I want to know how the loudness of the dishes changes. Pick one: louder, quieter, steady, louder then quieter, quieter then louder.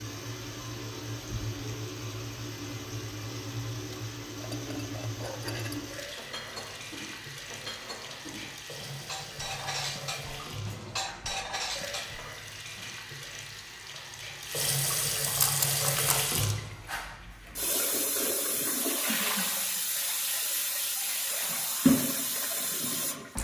louder.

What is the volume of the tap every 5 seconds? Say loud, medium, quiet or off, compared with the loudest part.
medium, medium, medium, loud, loud.